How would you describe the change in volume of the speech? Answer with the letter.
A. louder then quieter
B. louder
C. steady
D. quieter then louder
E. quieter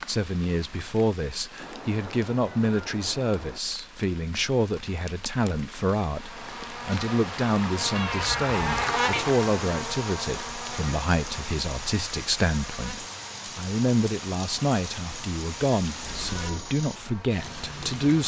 C.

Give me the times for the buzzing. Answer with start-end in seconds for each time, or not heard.
6.0-18.2.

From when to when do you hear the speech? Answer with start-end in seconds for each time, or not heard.
0.1-18.2.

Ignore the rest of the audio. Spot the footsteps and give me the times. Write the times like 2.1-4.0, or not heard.
not heard.